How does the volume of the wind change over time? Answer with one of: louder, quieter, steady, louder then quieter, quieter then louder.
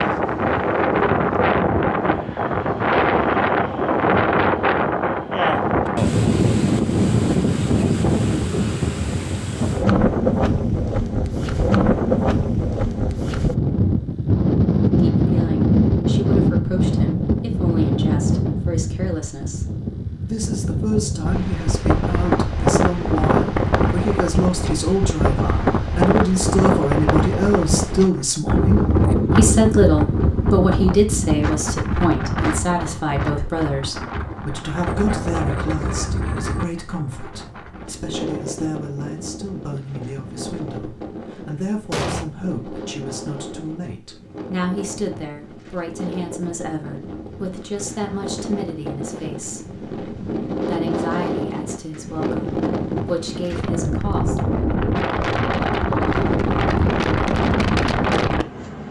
quieter then louder.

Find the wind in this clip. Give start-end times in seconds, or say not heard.
0.0-58.8.